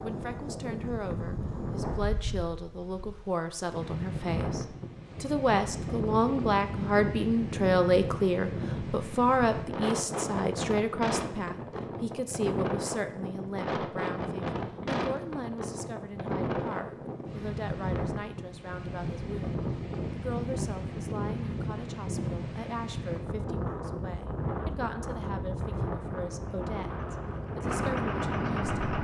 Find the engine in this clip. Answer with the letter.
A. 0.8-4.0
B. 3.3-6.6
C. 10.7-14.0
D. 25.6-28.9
D.